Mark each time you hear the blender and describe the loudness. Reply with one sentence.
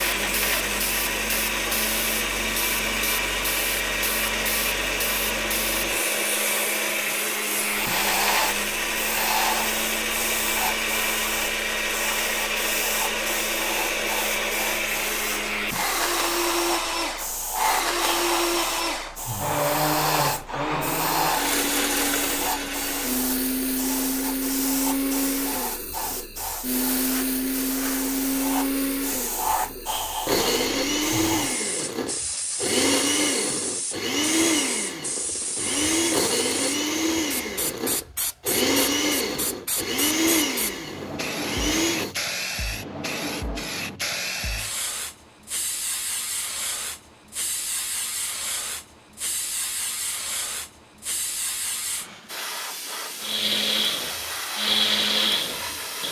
The blender can be heard from 0.0 to 42.1 s, at a steady volume; and briefly from 53.2 to 56.0 s.